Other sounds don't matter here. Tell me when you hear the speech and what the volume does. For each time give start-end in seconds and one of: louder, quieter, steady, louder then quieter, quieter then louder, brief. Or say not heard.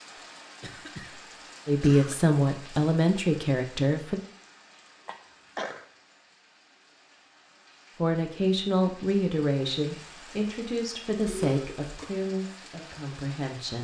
1.6-4.2 brief
8.0-13.7 quieter.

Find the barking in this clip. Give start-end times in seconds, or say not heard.
not heard.